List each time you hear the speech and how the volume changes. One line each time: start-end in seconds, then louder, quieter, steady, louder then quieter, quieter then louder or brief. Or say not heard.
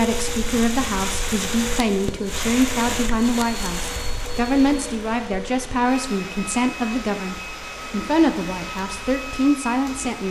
0.0-10.2 steady.